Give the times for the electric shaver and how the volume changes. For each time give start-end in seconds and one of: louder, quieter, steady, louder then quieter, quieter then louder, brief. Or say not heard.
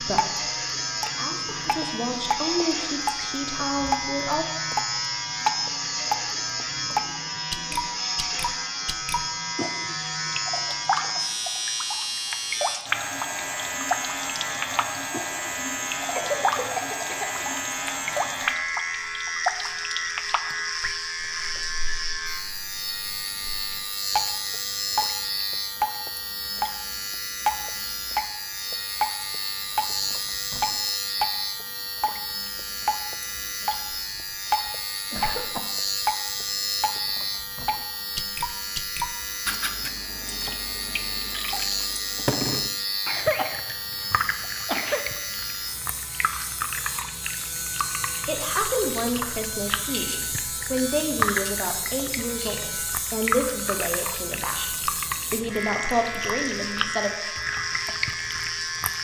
0.0-58.9 steady.